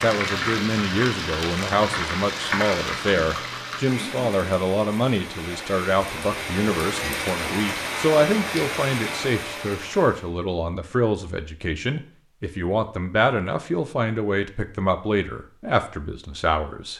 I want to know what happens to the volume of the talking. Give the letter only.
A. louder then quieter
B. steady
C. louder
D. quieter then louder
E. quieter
B.